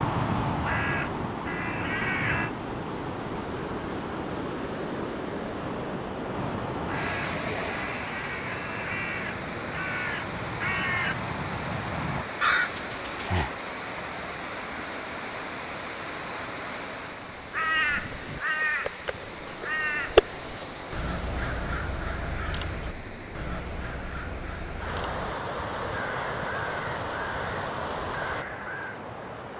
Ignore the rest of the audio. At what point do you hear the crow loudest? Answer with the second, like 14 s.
20 s.